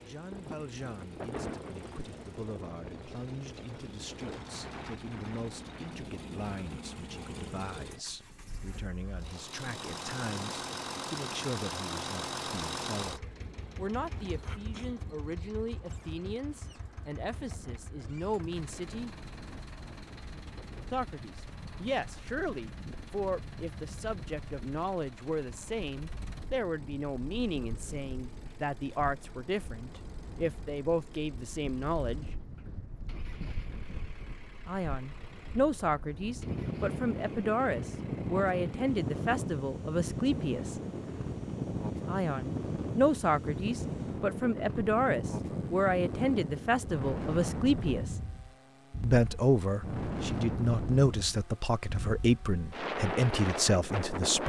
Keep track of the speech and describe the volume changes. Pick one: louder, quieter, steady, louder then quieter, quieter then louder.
louder.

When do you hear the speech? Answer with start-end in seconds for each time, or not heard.
0.0-19.1, 20.9-32.2, 34.6-40.8, 42.0-48.1, 49.0-54.4.